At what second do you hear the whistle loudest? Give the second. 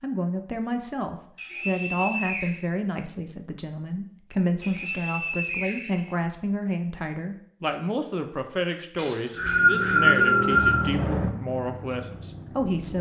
10 s.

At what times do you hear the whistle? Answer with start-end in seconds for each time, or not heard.
1.4-2.6, 4.6-6.1, 8.9-10.8.